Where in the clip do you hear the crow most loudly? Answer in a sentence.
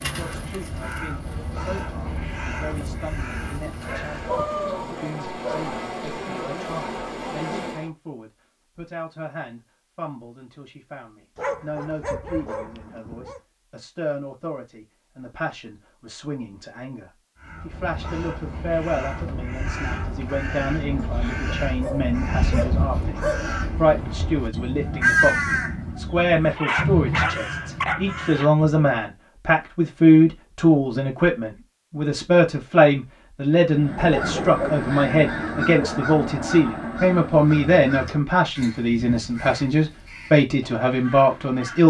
The loudest moment of the crow is at 25 seconds.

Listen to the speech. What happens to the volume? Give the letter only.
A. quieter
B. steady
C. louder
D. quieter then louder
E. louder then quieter
C.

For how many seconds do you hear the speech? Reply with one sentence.
The speech can be heard for 42 seconds in total.